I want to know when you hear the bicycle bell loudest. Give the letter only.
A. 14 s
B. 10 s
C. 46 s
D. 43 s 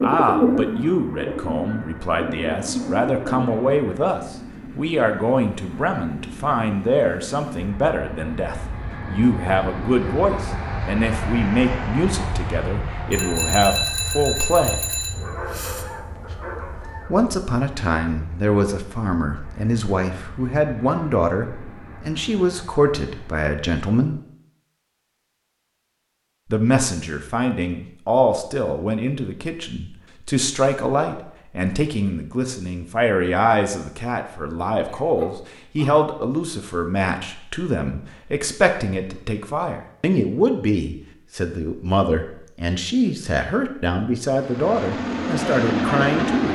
A.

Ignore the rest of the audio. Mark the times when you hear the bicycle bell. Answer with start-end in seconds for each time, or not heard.
13.1-15.2.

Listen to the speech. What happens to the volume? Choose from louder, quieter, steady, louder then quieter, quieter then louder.
steady.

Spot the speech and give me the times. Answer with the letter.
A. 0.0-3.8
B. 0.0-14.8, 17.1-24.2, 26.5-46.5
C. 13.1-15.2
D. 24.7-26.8
B.